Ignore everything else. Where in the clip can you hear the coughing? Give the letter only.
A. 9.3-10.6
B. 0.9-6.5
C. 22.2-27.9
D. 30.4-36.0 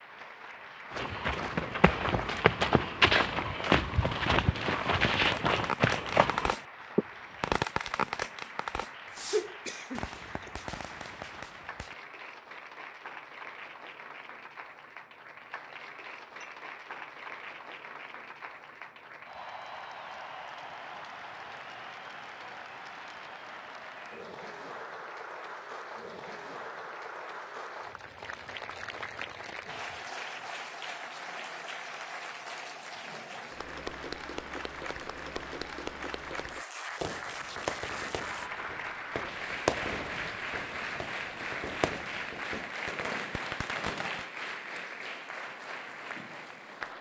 A.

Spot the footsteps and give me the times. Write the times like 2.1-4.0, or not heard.
0.9-6.5.